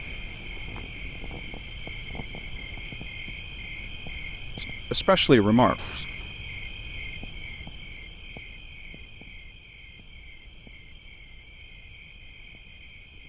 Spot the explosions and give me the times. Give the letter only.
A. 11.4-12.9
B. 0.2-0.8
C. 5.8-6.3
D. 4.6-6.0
C.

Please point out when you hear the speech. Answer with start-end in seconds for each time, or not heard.
4.6-6.0.